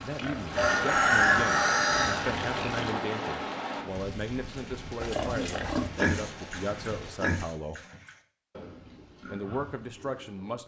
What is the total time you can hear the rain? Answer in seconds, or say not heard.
7 s.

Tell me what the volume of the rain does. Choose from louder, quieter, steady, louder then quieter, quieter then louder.
quieter.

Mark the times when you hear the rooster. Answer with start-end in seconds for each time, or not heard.
0.6-2.2.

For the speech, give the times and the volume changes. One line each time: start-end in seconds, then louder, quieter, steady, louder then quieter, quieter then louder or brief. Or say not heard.
0.0-7.8 steady
9.2-10.6 brief.